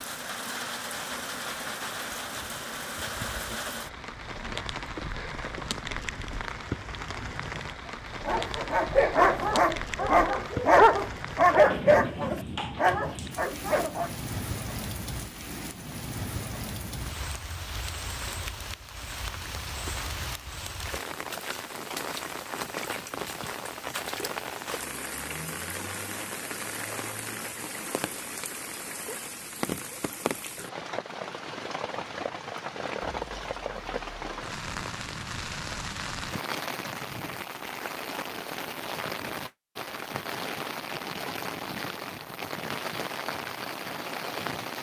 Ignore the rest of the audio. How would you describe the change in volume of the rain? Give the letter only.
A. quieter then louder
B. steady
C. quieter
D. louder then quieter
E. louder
B.